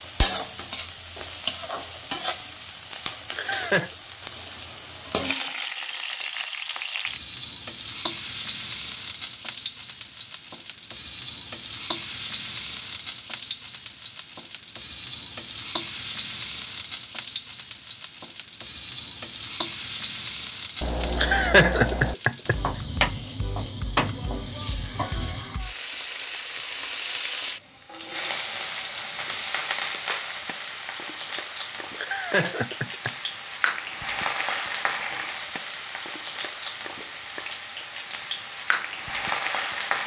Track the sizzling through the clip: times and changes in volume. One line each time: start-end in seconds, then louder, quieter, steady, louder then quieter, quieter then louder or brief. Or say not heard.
0.0-40.0 steady.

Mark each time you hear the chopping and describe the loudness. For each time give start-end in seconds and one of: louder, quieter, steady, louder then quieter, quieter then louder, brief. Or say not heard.
not heard.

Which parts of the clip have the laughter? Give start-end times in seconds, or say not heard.
3.4-3.9, 21.1-22.6, 31.9-33.1.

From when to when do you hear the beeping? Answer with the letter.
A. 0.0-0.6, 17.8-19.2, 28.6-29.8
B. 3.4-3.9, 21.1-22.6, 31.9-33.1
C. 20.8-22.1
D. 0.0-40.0
C.